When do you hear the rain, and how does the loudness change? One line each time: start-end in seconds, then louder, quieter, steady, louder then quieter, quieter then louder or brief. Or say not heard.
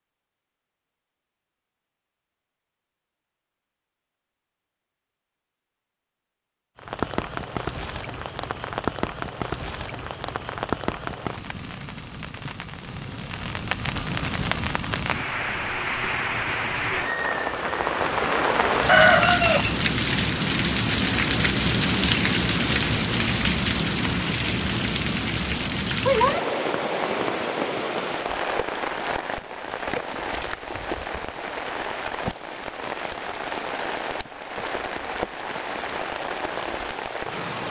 6.8-37.6 louder then quieter.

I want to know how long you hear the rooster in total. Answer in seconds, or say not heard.
2 s.